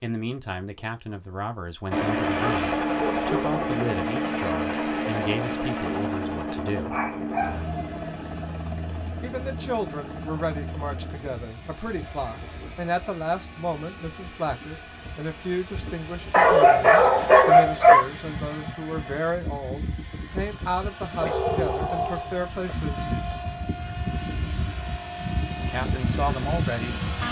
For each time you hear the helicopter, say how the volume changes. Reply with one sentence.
The helicopter can be heard from 1.9 to 27.2 s, getting quieter then louder.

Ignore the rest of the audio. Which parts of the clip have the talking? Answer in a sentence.
You can hear the talking from 0.0 to 7.0 s, from 9.2 to 23.1 s and from 25.6 to 27.0 s.